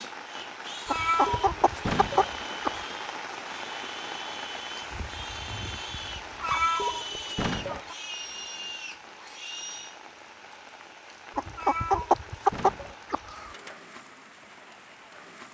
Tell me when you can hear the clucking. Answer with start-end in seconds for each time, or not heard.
0.8-2.9, 6.2-8.0, 11.3-13.5.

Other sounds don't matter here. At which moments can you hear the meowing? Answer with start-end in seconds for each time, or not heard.
0.9-2.3, 6.4-7.8, 11.6-12.9.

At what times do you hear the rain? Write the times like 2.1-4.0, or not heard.
0.0-15.4.